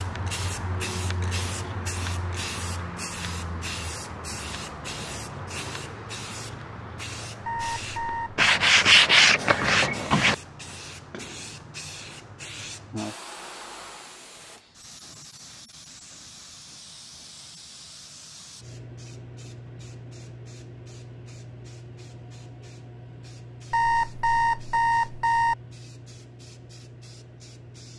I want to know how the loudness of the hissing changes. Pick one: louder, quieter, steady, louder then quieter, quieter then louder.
quieter.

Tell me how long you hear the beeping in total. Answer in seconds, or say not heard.
3 s.